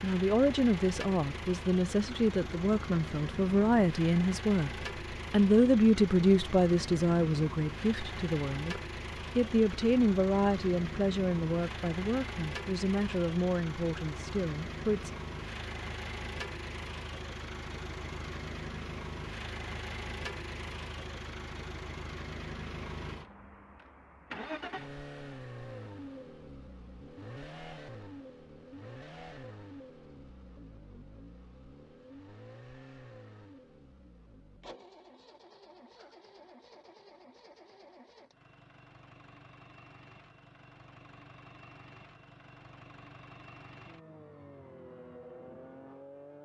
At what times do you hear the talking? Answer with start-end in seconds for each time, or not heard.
0.0-4.7, 5.3-15.1.